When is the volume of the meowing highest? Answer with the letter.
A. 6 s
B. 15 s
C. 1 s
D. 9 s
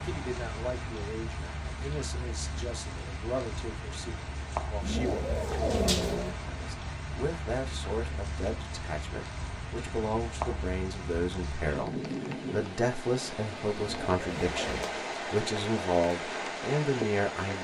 A.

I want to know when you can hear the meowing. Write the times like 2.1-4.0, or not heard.
4.8-6.3, 13.8-14.9.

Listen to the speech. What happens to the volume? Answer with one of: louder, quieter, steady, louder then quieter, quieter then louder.
louder.